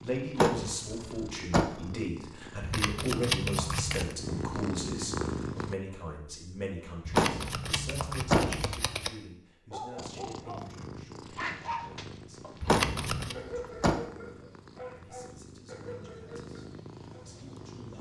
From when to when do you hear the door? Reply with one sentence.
The door can be heard from 0.3 to 1.7 s, from 7.2 to 8.8 s and from 12.7 to 14.0 s.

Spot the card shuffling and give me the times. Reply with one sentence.
You can hear the card shuffling from 2.6 to 4.2 s, from 7.0 to 9.1 s and from 12.6 to 13.3 s.